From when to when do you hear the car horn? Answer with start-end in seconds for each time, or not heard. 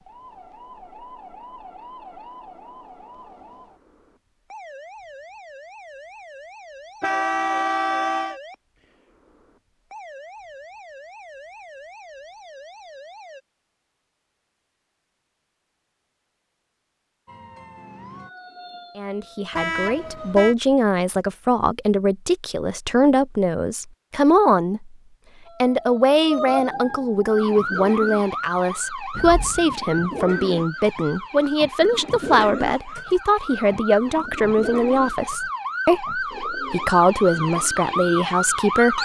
7.0-8.4, 19.5-20.6, 29.1-29.8.